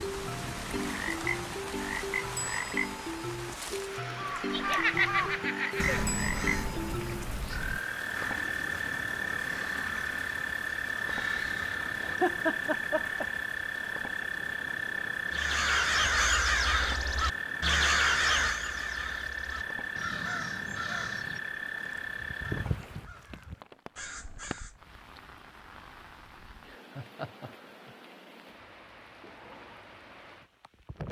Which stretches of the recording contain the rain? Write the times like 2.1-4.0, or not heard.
0.0-31.0.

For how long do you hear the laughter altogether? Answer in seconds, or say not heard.
4 s.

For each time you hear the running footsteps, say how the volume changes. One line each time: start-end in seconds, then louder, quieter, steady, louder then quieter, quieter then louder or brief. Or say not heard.
not heard.